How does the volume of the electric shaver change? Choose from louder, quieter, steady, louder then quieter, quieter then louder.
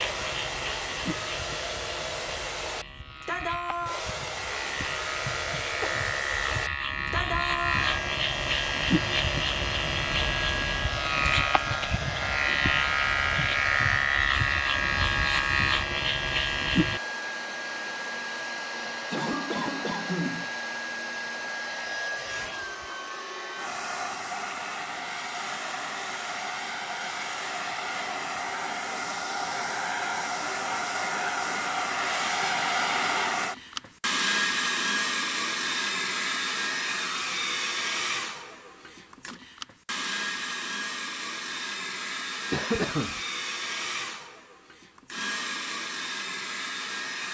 louder.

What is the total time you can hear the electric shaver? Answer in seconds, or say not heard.
17 s.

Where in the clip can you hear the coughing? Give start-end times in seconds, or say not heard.
5.1-6.0, 19.1-20.5, 42.5-43.2.